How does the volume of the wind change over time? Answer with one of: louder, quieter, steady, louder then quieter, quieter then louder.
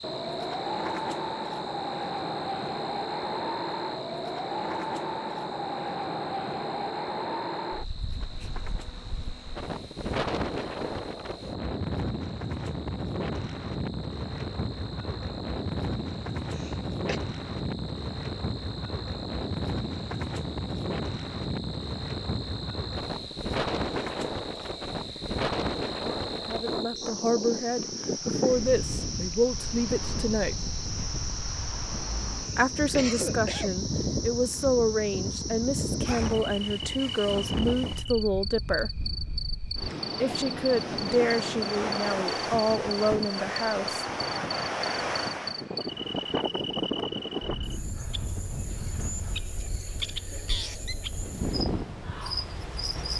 steady.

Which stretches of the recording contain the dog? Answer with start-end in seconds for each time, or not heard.
not heard.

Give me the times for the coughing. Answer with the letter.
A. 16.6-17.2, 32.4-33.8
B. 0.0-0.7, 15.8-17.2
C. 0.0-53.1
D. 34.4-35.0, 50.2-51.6
A.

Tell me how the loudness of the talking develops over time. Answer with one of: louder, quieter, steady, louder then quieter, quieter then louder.
steady.